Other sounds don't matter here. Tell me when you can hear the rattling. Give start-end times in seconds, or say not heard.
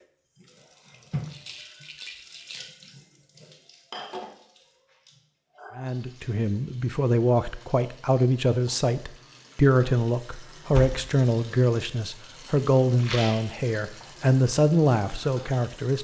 1.2-2.7, 12.9-13.4.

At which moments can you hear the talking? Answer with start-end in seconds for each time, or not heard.
5.8-15.9.